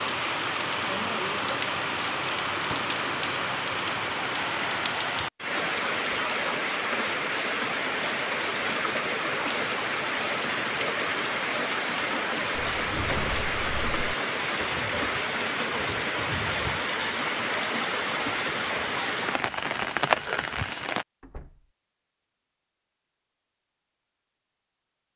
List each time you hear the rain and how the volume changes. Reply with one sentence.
The rain can be heard from 0.0 to 21.1 s, at a steady volume.